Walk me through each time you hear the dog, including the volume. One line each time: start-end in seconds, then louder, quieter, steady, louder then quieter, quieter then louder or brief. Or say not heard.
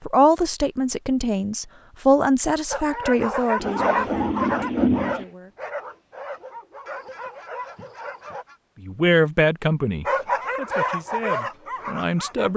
2.7-8.4 quieter
10.1-12.5 brief.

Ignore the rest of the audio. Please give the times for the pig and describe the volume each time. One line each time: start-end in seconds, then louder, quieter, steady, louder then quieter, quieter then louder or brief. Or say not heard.
not heard.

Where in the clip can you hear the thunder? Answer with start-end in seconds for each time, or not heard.
3.6-5.2.